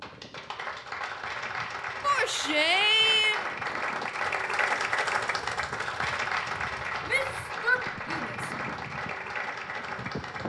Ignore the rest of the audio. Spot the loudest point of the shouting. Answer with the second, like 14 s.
3 s.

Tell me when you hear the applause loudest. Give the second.
5 s.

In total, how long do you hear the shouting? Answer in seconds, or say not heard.
3 s.